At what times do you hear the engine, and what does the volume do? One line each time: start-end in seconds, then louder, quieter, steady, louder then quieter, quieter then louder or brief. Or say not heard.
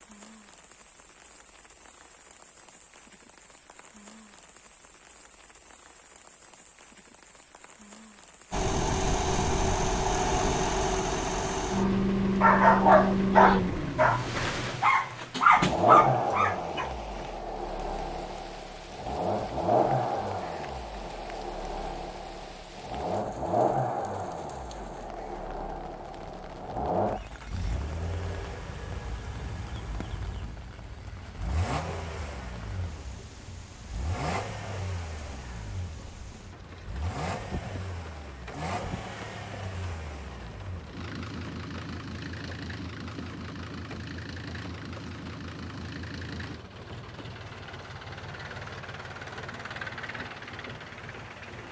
8.5-51.6 quieter.